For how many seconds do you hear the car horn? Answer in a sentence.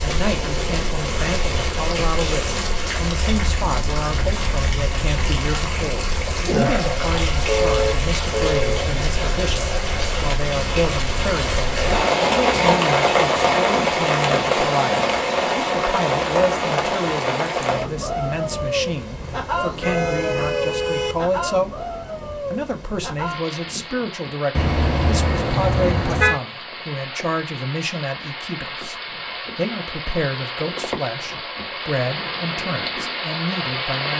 The car horn can be heard for 5 seconds in total.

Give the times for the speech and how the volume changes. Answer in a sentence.
You can hear the speech from 0.0 to 34.1 s, at a steady volume.